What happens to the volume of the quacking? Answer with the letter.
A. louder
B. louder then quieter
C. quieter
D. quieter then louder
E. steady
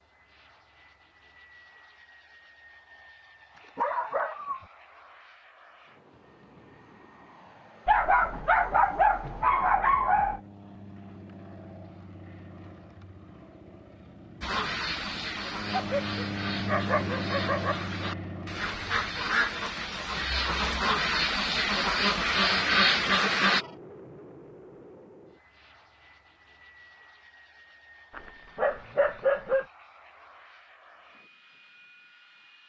A.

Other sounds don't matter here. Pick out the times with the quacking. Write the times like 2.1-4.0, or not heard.
14.4-23.6.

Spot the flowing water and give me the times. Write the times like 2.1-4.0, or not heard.
not heard.